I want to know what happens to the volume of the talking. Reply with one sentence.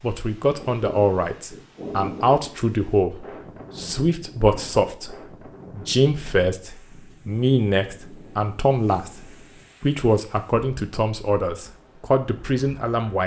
The loudness of the talking stays about the same.